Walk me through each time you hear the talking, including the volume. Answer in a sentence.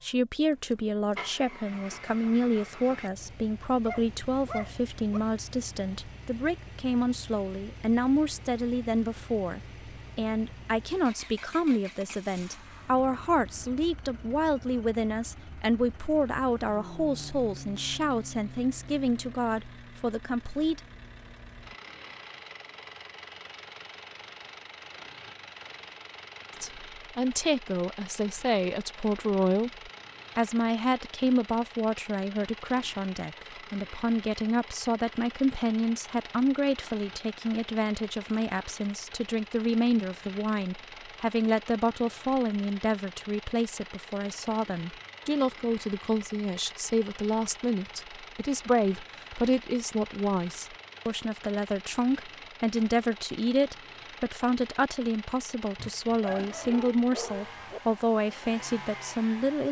The talking can be heard from 0.0 to 20.8 s, at a steady volume; and from 26.6 to 59.6 s, at a steady volume.